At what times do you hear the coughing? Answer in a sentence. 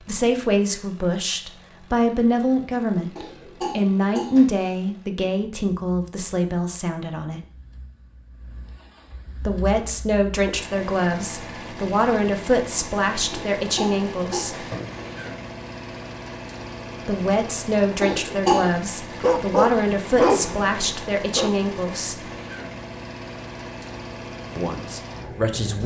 You can hear the coughing from 3.1 to 4.5 s, from 13.3 to 15.1 s and from 18.0 to 18.6 s.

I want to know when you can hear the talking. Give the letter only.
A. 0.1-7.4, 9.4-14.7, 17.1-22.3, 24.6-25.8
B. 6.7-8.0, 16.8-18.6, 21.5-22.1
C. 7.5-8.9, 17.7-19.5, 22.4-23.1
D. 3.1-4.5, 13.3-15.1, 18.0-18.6
A.